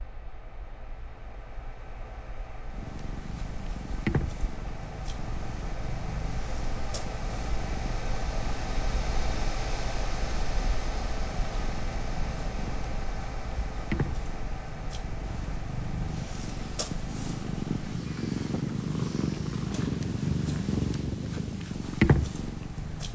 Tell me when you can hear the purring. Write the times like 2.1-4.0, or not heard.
2.7-23.1.